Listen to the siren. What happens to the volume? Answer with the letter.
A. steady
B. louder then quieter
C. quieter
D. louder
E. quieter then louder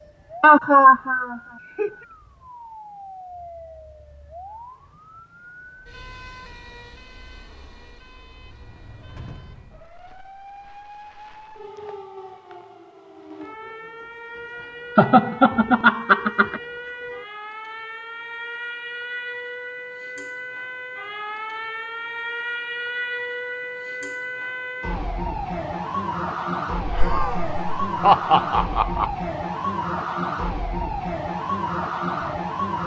D.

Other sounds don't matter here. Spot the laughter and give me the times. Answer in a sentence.
The laughter can be heard from 0.4 to 1.9 s, from 14.9 to 16.6 s and from 26.9 to 29.1 s.